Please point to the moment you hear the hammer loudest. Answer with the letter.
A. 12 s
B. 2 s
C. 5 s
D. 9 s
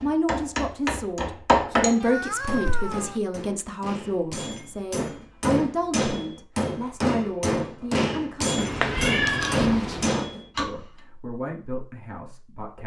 B.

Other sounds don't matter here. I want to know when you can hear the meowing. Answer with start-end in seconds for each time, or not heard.
2.0-3.2, 8.6-10.1.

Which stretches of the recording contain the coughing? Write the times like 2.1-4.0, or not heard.
not heard.